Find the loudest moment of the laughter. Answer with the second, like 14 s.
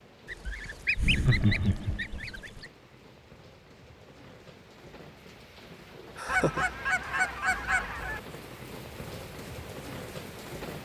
1 s.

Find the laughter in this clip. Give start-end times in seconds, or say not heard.
0.9-2.6, 6.2-6.7.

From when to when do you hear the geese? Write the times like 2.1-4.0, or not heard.
0.2-2.7, 6.2-8.2.